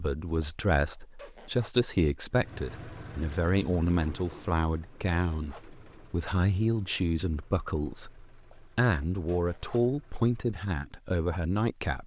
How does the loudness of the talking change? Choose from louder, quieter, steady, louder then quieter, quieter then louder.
steady.